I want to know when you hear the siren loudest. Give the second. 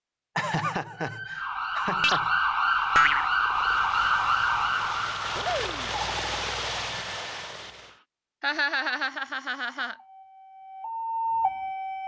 3 s.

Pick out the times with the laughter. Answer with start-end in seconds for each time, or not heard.
0.3-2.4, 8.4-9.9.